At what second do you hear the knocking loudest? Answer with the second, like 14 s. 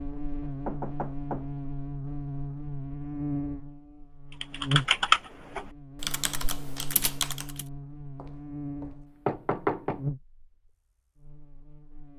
10 s.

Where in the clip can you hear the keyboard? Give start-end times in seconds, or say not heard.
4.4-7.7.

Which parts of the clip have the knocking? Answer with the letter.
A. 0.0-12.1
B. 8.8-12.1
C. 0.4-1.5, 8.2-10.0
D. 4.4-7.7
C.